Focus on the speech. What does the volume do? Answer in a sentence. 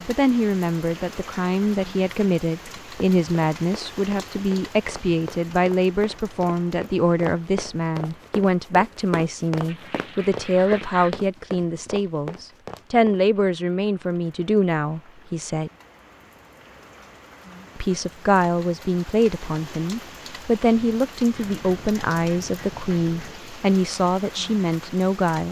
The loudness of the speech stays about the same.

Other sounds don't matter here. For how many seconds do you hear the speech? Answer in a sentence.
The speech can be heard for 23 seconds in total.